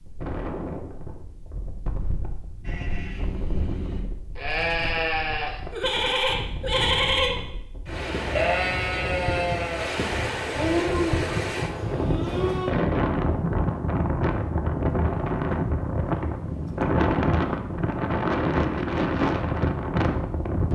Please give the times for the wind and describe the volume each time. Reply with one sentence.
The wind can be heard from 0.0 to 20.7 s, getting louder.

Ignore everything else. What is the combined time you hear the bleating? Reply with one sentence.
You can hear the bleating for 10 seconds altogether.